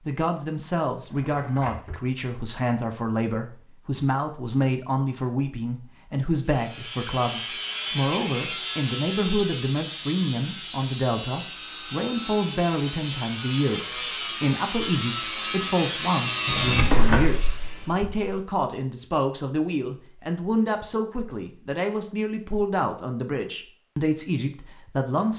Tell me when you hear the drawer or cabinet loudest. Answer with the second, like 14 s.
17 s.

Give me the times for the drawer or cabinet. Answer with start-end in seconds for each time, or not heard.
0.9-2.0, 16.4-18.3.